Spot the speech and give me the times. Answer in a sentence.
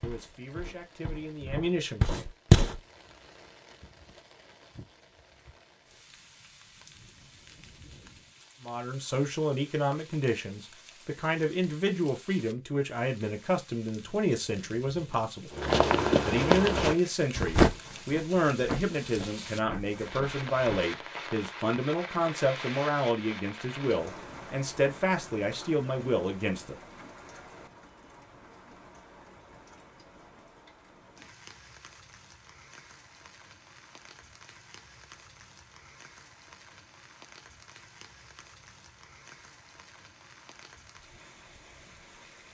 The speech can be heard from 0.0 to 2.2 s, from 8.6 to 15.6 s and from 16.2 to 26.8 s.